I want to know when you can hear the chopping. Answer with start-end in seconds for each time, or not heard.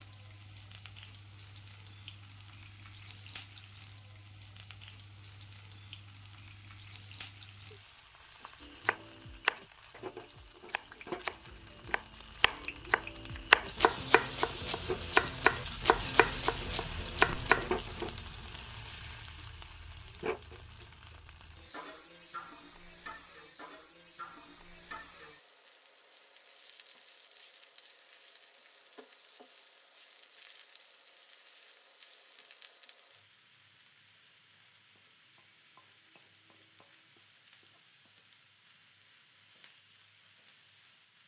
8.6-18.1.